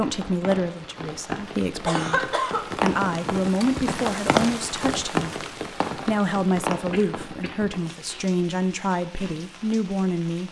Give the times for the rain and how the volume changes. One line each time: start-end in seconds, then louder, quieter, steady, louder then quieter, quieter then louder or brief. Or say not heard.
0.0-10.4 louder then quieter.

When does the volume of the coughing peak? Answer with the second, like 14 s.
2 s.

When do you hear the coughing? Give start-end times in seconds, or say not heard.
1.9-2.6, 6.9-8.2.